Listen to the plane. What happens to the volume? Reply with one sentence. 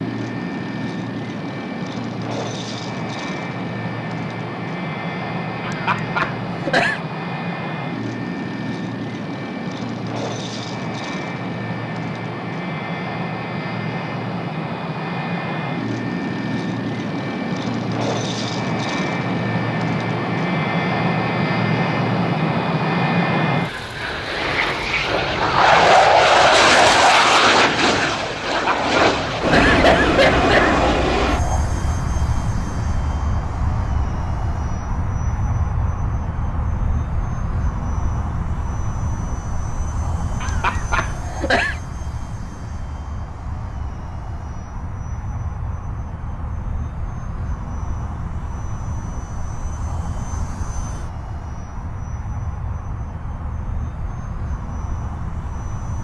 The loudness of the plane goes up, then down.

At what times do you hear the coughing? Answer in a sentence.
The coughing can be heard from 5.6 to 7.0 s, from 28.4 to 30.8 s and from 40.4 to 41.8 s.